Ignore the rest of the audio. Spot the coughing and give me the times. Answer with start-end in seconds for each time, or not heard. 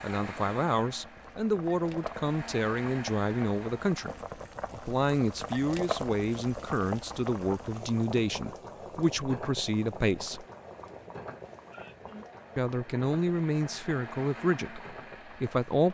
11.7-12.4.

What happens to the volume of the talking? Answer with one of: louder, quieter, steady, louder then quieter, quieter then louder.
steady.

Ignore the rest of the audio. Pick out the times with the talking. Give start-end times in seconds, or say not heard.
0.0-10.4, 12.6-15.9.